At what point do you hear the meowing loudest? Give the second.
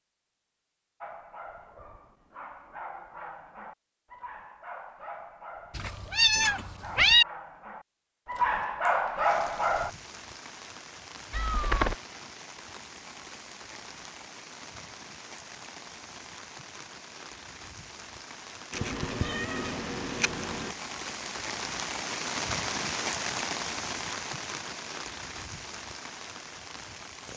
7 s.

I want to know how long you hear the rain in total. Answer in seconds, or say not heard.
18 s.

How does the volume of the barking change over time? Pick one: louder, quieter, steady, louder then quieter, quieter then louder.
louder.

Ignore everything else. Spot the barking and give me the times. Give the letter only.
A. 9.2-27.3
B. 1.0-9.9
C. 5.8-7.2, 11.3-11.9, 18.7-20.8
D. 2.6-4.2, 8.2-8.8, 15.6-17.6
B.